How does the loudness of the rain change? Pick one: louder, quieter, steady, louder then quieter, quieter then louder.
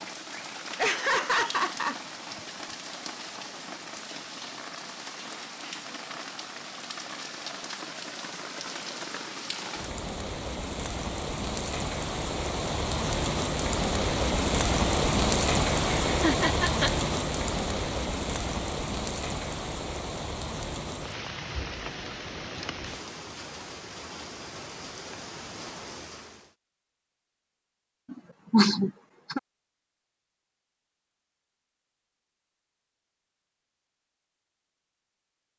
louder then quieter.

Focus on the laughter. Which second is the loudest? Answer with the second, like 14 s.
29 s.